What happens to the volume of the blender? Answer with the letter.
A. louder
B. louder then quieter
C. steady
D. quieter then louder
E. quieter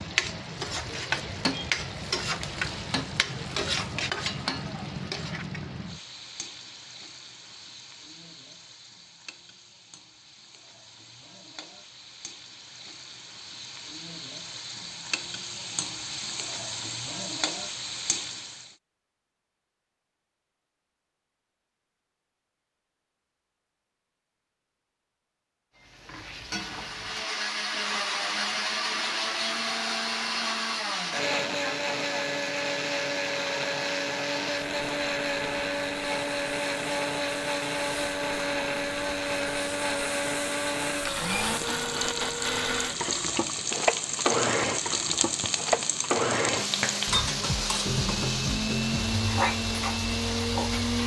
C.